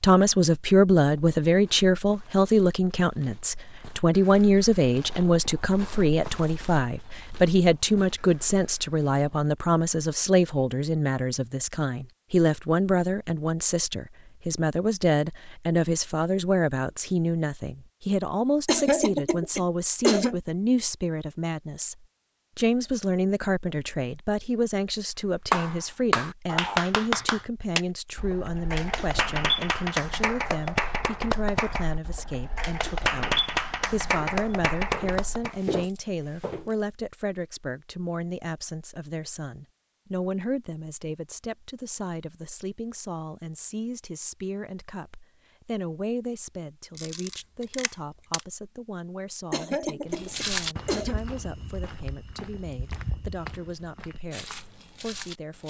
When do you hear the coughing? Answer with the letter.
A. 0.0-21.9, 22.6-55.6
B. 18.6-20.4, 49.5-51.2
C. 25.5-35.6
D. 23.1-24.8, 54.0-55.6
B.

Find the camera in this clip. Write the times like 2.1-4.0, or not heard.
47.0-48.4.